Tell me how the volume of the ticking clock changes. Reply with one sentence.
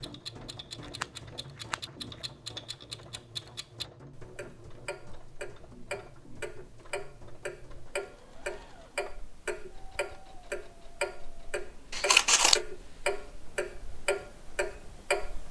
The volume of the ticking clock goes up.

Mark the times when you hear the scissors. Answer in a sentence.
You can hear the scissors from 0.8 to 1.9 s and from 11.9 to 12.6 s.